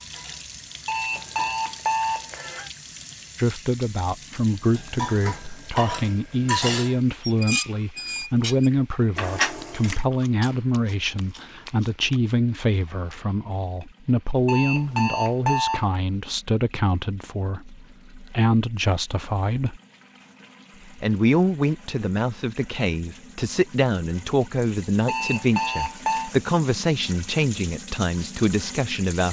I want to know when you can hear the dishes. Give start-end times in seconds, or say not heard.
0.0-1.8, 4.7-10.1.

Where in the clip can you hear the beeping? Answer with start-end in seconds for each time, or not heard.
0.8-2.7, 14.4-15.9, 25.1-26.3.